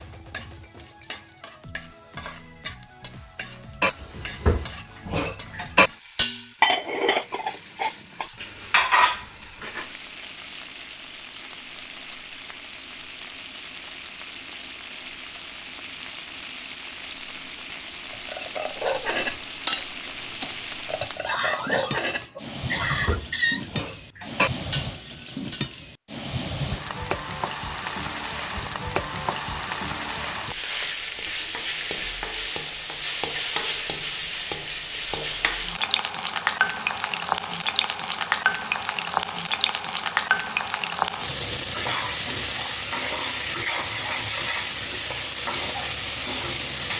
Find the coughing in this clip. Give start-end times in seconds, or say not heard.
21.2-23.6.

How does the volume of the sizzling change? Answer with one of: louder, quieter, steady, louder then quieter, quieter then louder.
louder.